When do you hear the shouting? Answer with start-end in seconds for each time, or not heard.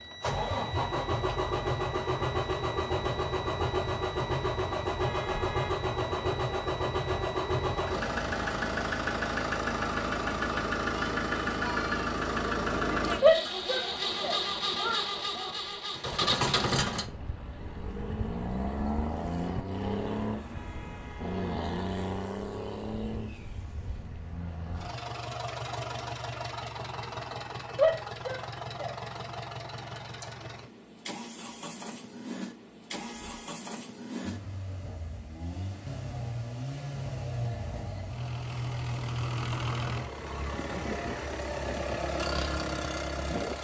13.2-15.5, 27.8-29.4.